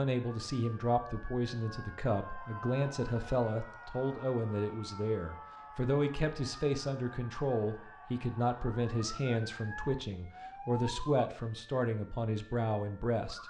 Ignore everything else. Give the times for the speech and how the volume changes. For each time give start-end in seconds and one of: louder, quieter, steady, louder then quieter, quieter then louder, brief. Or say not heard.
0.0-13.4 steady.